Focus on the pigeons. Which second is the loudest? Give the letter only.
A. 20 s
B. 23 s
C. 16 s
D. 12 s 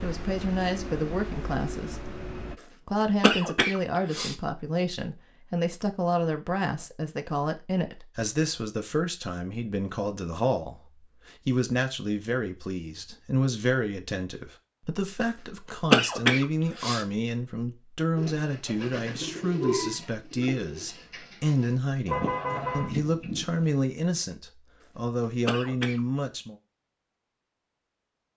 A.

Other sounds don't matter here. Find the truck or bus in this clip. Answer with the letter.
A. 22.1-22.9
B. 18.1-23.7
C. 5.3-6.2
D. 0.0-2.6
D.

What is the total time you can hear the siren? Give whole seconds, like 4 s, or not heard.
not heard.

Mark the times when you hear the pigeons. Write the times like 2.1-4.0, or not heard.
18.1-23.7.